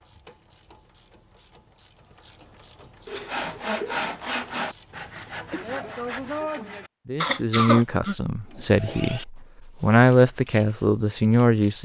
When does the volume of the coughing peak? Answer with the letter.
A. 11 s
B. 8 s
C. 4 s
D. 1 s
B.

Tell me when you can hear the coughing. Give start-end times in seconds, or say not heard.
3.0-4.0, 7.2-9.2.